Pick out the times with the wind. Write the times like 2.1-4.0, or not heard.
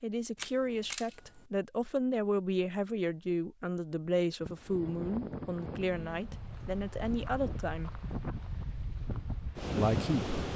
4.4-10.5.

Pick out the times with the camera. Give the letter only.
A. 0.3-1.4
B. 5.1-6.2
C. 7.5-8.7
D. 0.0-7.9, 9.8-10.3
A.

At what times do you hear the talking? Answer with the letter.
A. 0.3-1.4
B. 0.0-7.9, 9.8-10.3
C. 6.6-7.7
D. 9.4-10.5
B.